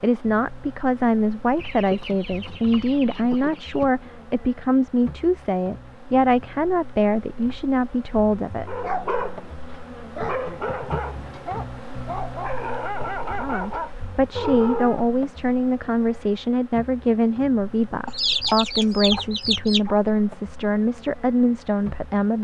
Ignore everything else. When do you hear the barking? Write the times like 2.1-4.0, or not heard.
8.7-15.1.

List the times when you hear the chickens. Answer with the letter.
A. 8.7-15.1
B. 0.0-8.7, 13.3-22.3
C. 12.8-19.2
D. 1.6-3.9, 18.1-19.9
D.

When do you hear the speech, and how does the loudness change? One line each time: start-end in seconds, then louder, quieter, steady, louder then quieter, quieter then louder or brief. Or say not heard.
0.0-8.7 steady
13.3-22.3 steady.